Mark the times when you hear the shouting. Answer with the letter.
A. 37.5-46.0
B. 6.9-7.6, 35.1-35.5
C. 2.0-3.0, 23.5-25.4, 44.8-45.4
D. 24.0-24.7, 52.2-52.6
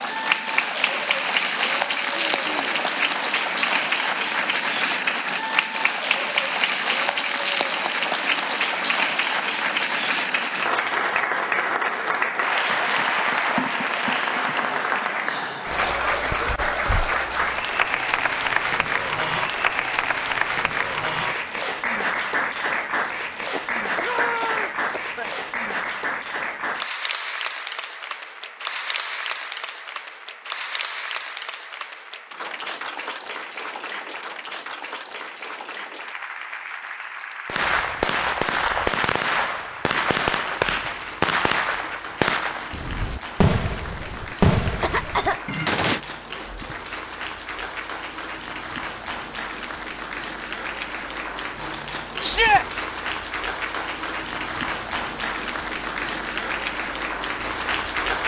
D.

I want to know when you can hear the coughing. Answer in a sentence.
You can hear the coughing from 2.0 to 3.0 s, from 23.5 to 25.4 s and from 44.8 to 45.4 s.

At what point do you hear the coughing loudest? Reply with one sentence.
The volume of the coughing peaks at 45 seconds.